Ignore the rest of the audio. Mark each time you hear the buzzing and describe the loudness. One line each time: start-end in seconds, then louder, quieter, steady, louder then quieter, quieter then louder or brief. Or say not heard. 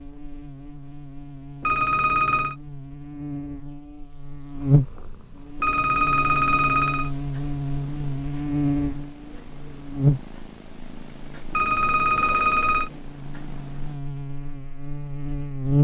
0.0-15.7 louder then quieter.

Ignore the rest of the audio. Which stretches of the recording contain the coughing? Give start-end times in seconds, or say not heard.
not heard.